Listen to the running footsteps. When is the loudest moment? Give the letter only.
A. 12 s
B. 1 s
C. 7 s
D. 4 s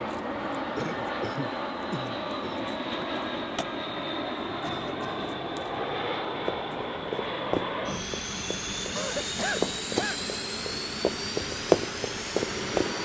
A.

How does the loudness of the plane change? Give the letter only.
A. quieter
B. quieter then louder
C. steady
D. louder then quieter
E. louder
C.